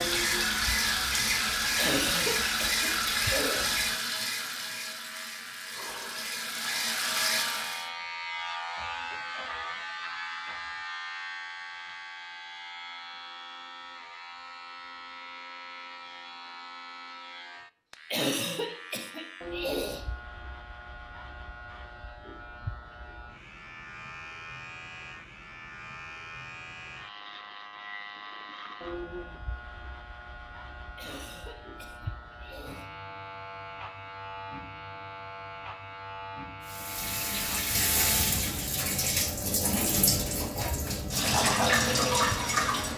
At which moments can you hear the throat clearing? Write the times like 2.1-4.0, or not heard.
1.8-3.8, 18.1-20.1, 30.9-32.9.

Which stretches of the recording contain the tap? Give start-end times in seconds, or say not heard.
0.0-7.8, 36.6-42.9.